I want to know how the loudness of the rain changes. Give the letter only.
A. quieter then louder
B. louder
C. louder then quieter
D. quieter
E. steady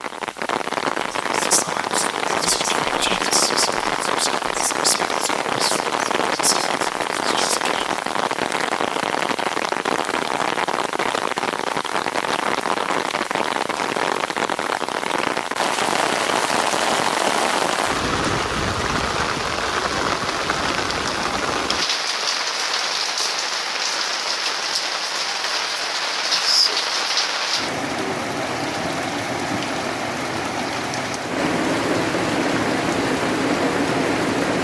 E.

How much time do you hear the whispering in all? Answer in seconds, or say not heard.
7 s.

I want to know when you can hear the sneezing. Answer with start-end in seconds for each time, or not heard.
not heard.